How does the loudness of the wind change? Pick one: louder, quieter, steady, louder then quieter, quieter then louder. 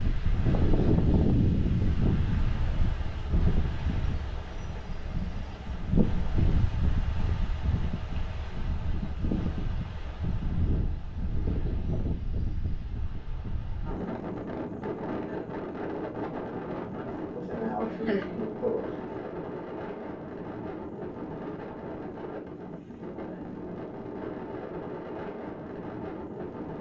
quieter.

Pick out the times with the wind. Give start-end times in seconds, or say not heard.
0.0-26.7.